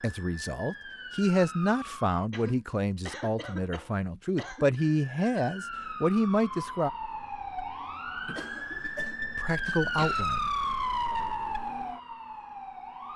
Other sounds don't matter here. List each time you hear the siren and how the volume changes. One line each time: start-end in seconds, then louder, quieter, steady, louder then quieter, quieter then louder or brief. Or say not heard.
0.0-2.2 brief
4.8-13.1 louder then quieter.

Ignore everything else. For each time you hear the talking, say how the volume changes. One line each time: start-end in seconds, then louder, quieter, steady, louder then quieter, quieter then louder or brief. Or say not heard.
0.0-6.9 quieter then louder
9.3-10.5 brief.